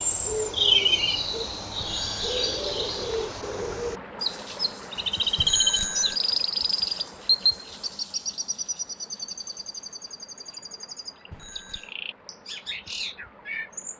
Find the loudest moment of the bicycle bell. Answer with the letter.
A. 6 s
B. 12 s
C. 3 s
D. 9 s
A.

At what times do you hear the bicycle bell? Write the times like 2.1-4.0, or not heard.
1.8-2.5, 5.3-6.2, 11.3-11.9.